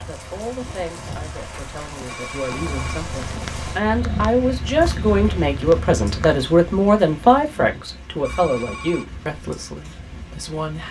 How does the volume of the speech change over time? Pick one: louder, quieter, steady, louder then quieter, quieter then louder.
louder then quieter.